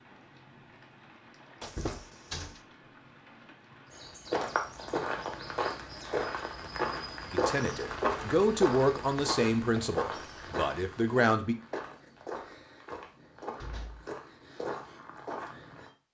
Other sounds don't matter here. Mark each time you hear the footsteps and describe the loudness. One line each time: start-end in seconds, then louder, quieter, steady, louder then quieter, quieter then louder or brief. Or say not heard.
3.9-15.9 quieter.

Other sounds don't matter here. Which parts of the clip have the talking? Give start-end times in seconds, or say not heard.
7.3-11.6.